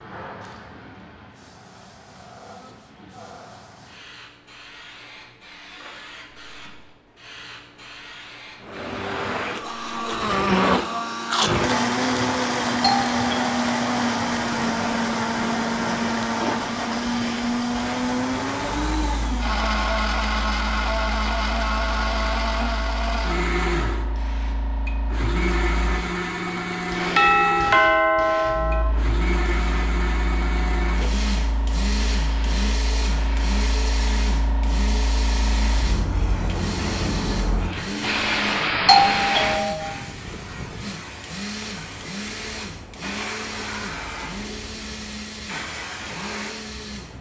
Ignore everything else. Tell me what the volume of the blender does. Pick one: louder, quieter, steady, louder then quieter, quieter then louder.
quieter.